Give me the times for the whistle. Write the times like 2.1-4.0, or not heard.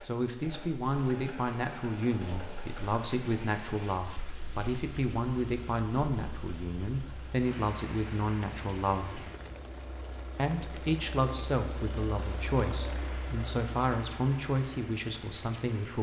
not heard.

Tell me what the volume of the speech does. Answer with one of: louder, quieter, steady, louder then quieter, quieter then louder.
steady.